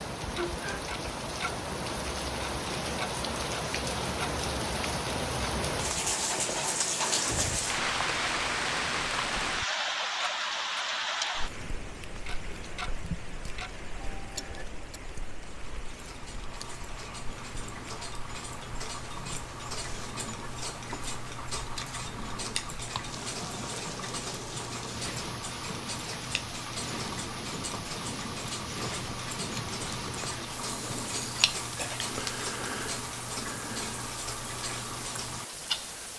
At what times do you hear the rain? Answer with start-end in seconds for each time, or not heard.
0.0-36.1.